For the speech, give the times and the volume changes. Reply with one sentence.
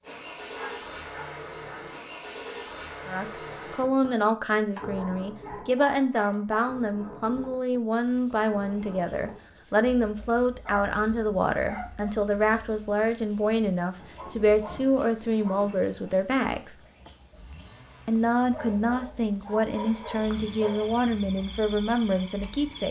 The speech can be heard from 3.0 to 16.8 s, at a steady volume; and from 18.1 to 22.8 s, at a steady volume.